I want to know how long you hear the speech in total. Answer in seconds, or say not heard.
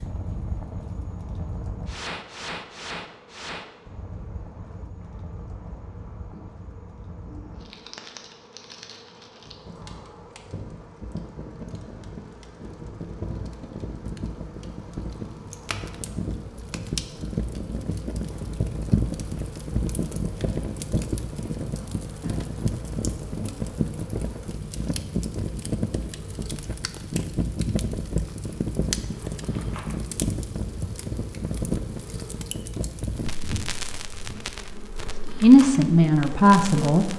2 s.